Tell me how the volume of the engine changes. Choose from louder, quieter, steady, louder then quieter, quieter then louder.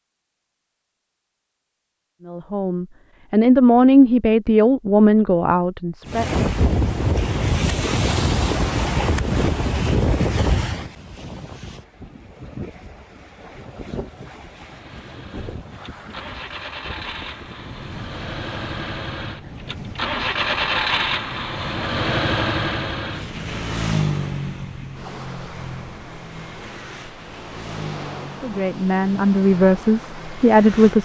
louder then quieter.